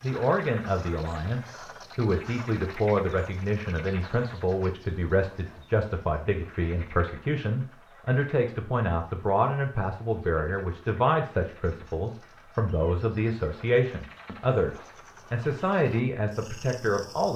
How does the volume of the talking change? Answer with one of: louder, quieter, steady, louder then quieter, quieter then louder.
steady.